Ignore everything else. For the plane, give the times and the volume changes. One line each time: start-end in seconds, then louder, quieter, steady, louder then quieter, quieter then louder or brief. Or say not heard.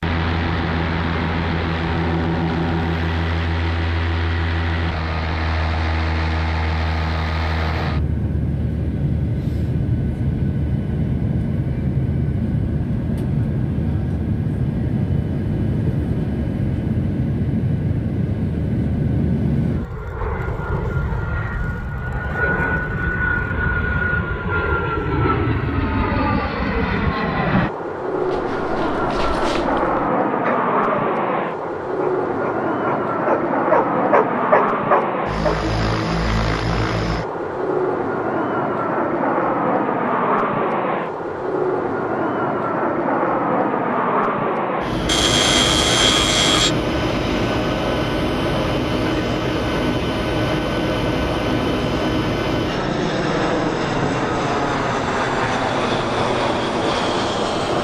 0.0-57.7 steady.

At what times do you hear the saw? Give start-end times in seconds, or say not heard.
45.0-46.8.